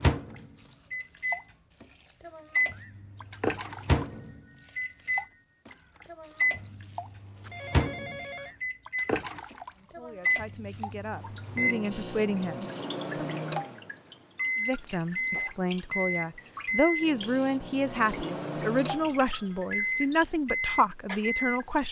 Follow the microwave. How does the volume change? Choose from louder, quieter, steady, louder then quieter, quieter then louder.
steady.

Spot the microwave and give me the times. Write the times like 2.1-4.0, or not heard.
0.0-21.6.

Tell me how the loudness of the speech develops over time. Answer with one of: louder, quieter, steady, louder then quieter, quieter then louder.
louder.